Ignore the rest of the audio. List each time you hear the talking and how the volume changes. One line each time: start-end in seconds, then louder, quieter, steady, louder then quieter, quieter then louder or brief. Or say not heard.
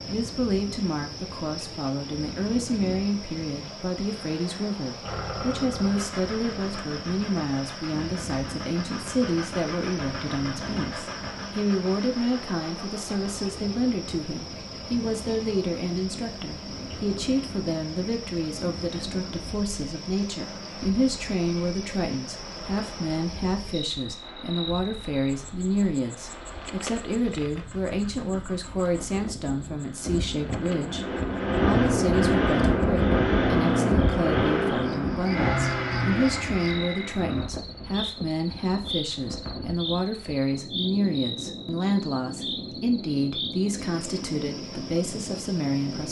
0.1-46.0 steady.